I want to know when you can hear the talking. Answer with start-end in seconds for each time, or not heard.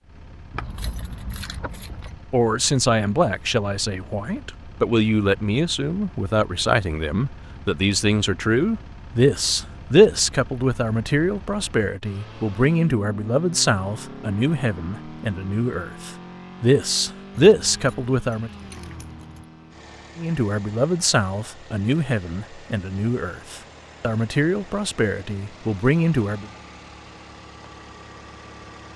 2.3-18.5, 20.1-26.5.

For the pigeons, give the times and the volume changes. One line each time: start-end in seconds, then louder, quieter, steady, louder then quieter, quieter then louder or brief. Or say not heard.
not heard.